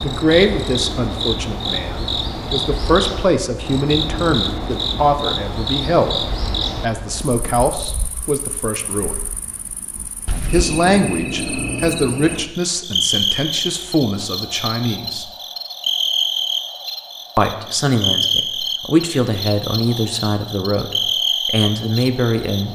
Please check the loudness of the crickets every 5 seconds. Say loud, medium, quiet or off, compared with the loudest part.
loud, medium, loud, loud, loud.